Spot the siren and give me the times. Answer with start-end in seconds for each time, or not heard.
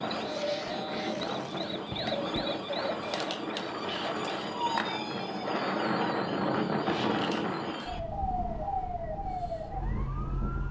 0.0-10.6.